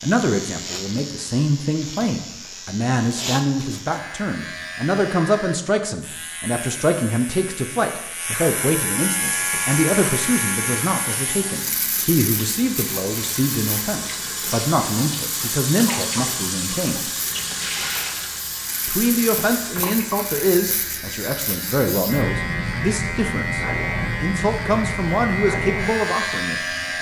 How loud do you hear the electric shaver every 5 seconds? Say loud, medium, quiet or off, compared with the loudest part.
medium, medium, medium, medium, loud, loud.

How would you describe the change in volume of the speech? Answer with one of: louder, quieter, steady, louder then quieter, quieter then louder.
steady.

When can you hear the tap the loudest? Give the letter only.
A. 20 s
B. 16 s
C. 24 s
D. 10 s
B.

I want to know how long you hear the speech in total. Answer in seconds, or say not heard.
25 s.